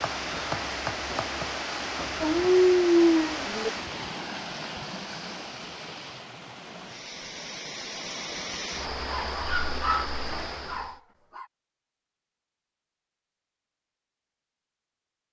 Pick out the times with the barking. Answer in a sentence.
You can hear the barking from 2.2 to 3.7 s and from 8.9 to 11.4 s.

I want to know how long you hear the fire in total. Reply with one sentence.
You can't hear the fire here.